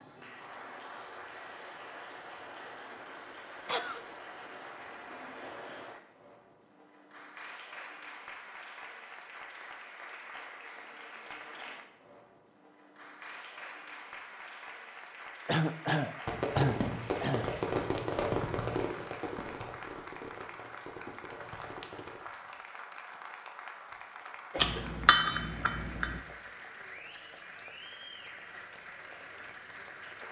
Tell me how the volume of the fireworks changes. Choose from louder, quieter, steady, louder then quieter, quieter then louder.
quieter.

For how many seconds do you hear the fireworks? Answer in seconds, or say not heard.
6 s.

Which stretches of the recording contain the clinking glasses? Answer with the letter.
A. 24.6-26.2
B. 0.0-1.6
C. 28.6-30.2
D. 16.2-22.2
A.